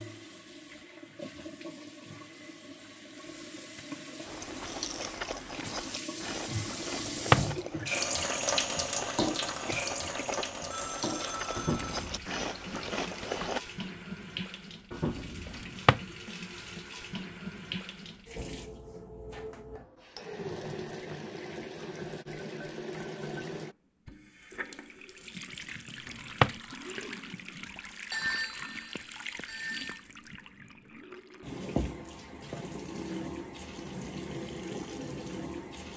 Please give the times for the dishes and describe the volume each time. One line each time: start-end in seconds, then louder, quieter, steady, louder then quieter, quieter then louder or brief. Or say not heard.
not heard.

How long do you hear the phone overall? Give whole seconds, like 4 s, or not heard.
3 s.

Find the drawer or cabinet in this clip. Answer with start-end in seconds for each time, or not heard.
7.0-7.5, 15.6-16.0, 26.1-26.6.